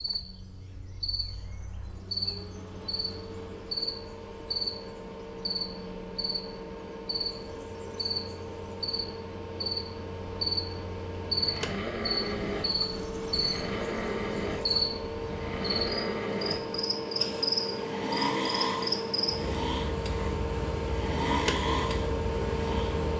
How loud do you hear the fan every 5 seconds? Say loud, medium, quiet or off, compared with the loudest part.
quiet, medium, medium, loud, loud.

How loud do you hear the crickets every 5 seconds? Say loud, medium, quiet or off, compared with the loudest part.
medium, medium, loud, loud, medium.